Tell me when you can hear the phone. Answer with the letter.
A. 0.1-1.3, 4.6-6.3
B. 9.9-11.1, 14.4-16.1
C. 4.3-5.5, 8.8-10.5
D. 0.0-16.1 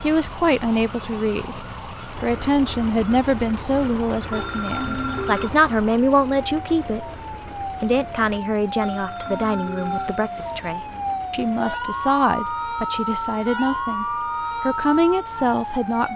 C.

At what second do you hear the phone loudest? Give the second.
5 s.